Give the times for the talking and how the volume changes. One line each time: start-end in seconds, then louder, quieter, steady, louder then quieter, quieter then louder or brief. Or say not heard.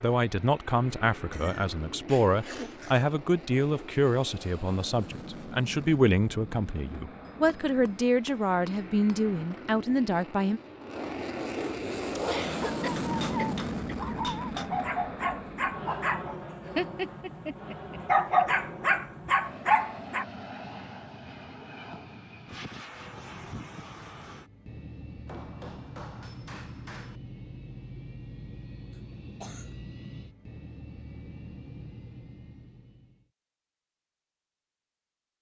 0.0-10.6 steady.